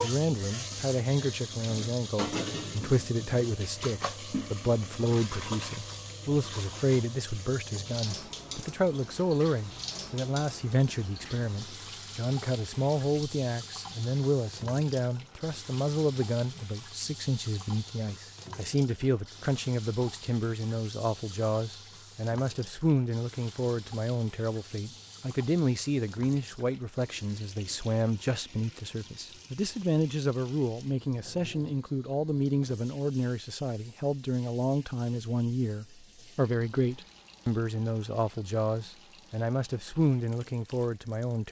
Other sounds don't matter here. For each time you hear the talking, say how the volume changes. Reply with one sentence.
You can hear the talking from 0.0 to 41.4 s, at a steady volume.